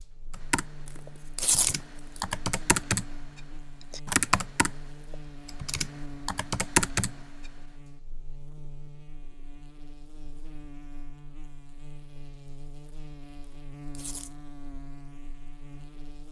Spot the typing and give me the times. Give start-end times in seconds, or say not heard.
0.3-3.0, 3.9-7.1.